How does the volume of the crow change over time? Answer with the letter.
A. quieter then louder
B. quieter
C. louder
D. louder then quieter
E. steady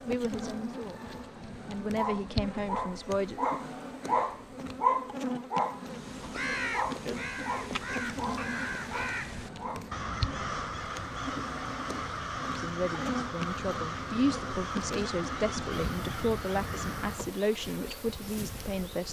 E.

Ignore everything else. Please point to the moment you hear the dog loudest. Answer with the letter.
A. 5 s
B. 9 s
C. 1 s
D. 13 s
A.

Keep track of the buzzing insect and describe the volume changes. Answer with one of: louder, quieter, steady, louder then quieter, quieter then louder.
steady.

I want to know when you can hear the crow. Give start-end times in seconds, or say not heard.
5.8-17.4.